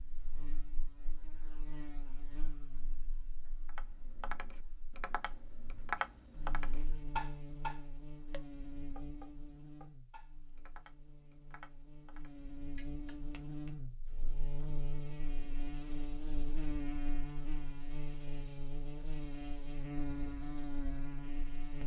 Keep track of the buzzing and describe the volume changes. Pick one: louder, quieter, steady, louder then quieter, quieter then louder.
louder.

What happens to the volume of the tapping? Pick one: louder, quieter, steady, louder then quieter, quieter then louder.
louder then quieter.